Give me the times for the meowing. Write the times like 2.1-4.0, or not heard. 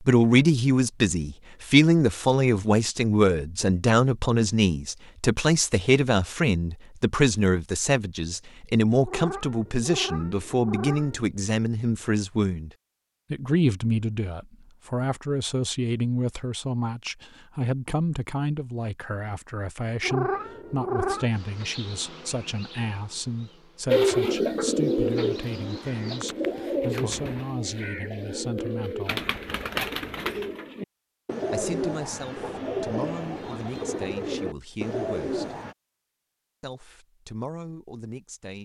9.1-11.3, 20.0-21.4.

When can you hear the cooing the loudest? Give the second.
24 s.